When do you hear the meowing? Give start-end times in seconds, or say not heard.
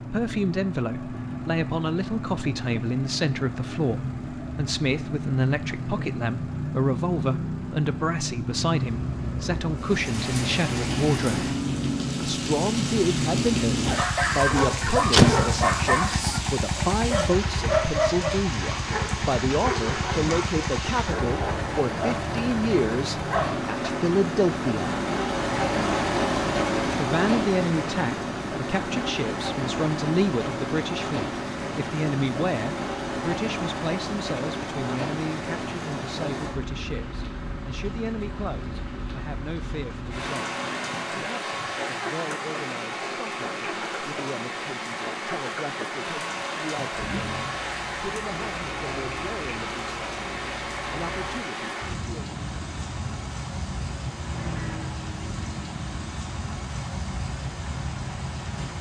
not heard.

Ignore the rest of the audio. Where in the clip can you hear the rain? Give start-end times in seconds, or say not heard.
9.8-58.7.